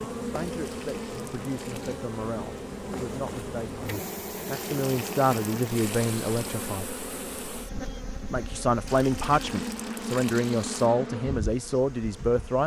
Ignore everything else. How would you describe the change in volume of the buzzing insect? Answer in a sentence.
The volume of the buzzing insect stays about the same.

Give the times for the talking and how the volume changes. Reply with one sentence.
The talking can be heard from 0.0 to 6.8 s, getting louder; and from 8.3 to 12.6 s, getting quieter then louder.